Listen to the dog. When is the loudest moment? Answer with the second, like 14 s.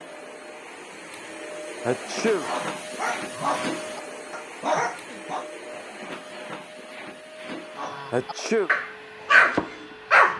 9 s.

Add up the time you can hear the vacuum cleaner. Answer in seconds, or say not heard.
10 s.